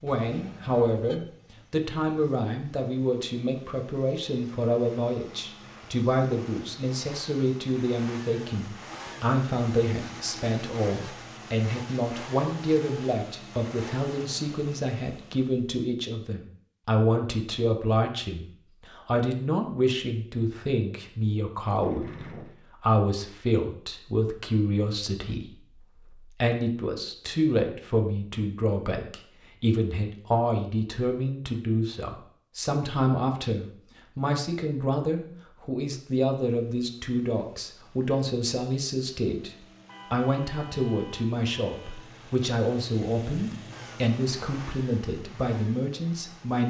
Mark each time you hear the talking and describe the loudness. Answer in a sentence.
You can hear the talking from 0.0 to 46.6 s, at a steady volume.